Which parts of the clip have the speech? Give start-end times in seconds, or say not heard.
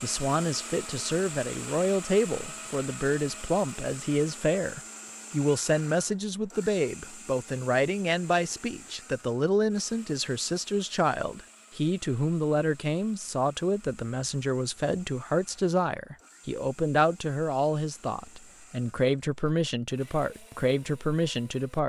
0.0-21.8.